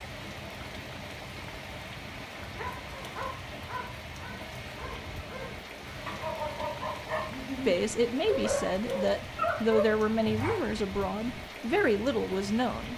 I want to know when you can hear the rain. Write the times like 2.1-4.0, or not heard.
0.0-12.9.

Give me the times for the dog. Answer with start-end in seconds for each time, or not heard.
2.4-10.6.